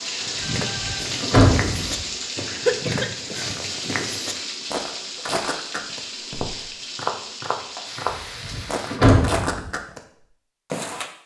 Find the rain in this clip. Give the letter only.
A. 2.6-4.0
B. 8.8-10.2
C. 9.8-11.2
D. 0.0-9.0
D.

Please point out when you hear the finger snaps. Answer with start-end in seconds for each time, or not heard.
not heard.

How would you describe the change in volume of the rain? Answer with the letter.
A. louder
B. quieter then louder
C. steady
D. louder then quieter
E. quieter
E.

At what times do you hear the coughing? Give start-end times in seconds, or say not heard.
2.6-4.0.